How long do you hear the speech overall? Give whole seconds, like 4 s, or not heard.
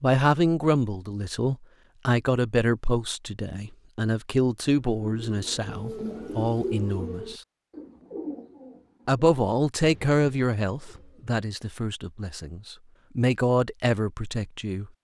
13 s.